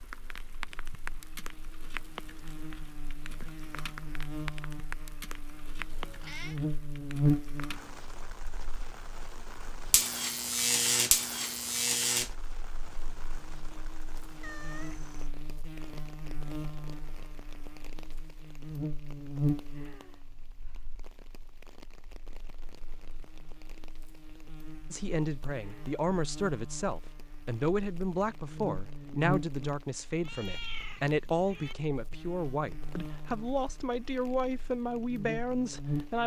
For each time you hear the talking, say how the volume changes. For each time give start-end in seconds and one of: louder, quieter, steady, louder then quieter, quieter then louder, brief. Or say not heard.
24.9-36.2 steady.